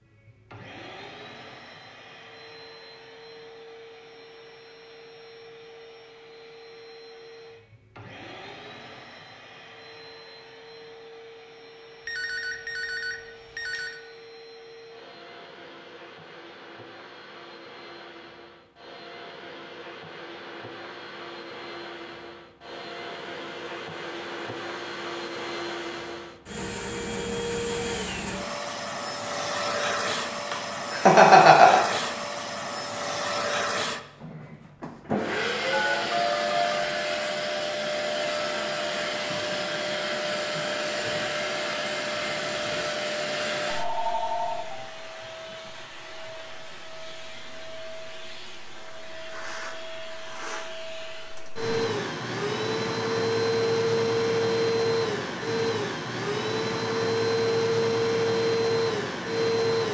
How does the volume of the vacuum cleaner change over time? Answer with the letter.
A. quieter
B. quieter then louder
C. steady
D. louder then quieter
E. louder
E.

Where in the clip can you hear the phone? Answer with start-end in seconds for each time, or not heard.
12.1-14.0, 35.7-36.8, 43.6-44.9.